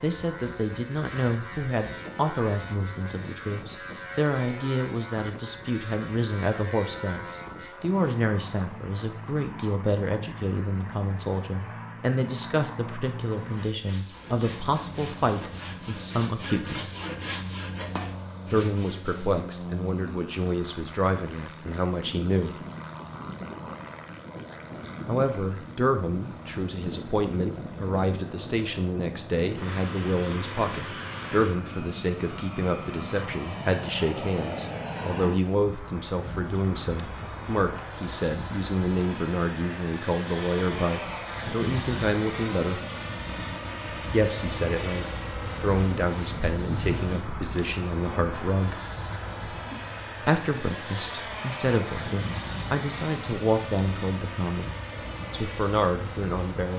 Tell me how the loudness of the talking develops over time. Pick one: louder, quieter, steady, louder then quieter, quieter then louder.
steady.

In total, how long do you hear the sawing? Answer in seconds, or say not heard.
6 s.